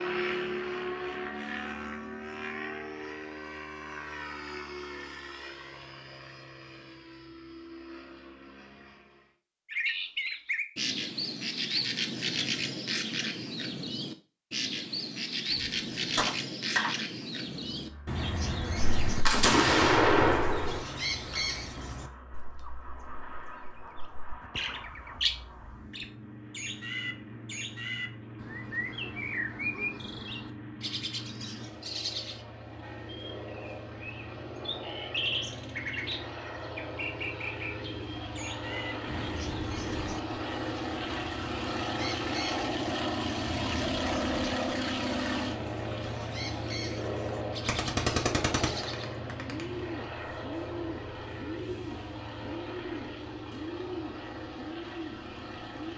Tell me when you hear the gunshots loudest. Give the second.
20 s.